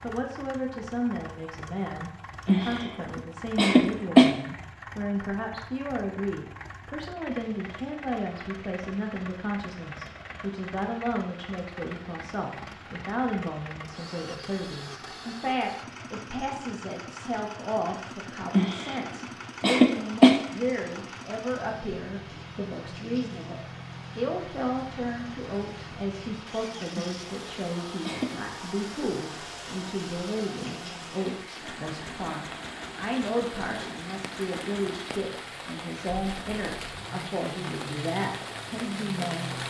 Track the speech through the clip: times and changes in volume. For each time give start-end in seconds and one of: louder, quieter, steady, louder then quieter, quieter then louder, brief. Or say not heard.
0.0-39.5 steady.